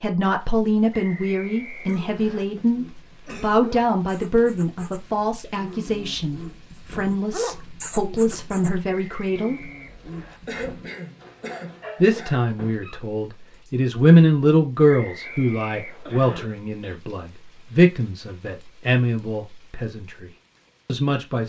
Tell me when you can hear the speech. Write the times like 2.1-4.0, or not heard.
0.0-9.6, 12.0-21.4.